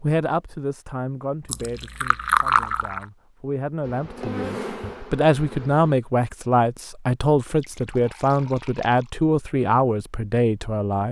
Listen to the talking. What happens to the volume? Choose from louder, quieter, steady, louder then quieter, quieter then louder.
louder.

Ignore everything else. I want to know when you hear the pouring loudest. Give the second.
2 s.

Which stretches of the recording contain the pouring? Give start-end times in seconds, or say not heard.
1.4-3.0, 7.5-9.1.